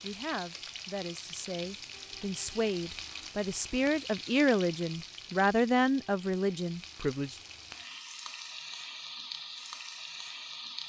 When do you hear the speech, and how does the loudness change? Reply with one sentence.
The speech can be heard from 0.0 to 7.4 s, getting louder.